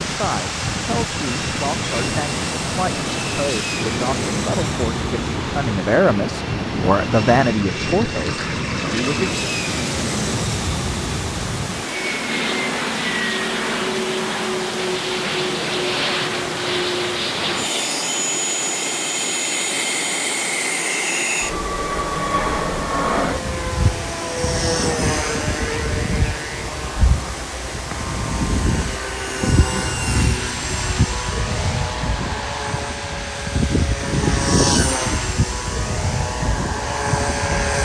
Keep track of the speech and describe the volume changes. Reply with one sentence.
The loudness of the speech goes up.